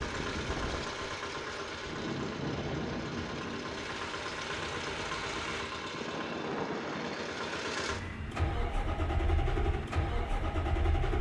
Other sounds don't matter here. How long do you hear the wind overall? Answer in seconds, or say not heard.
8 s.